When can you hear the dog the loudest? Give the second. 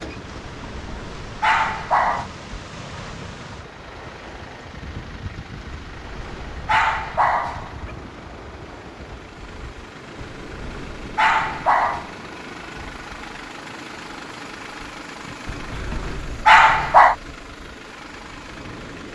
17 s.